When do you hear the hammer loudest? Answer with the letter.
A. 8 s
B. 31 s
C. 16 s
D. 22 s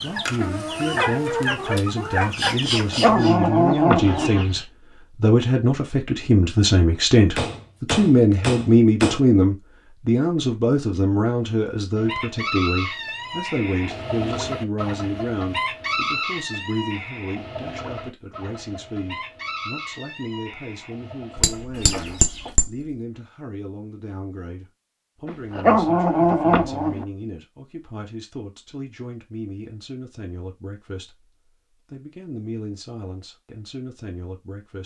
D.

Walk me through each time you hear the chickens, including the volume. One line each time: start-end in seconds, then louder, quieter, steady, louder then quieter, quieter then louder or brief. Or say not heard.
0.0-4.7 quieter
11.9-22.6 quieter.